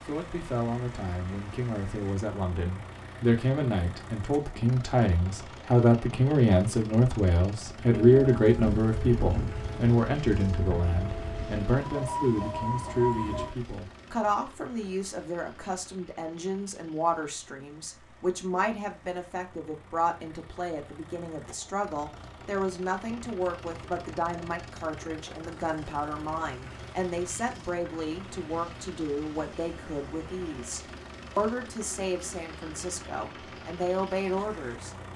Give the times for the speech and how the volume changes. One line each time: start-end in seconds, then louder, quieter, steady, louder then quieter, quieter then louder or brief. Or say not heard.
0.1-35.0 quieter.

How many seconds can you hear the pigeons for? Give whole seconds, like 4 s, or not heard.
not heard.